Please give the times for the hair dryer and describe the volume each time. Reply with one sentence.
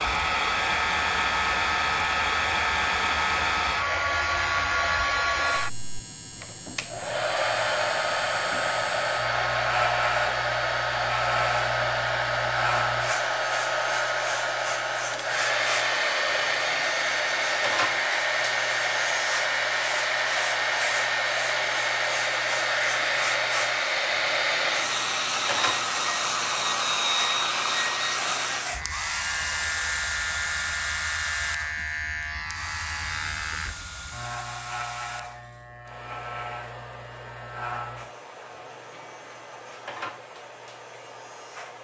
You can hear the hair dryer from 0.0 to 41.7 s, getting quieter.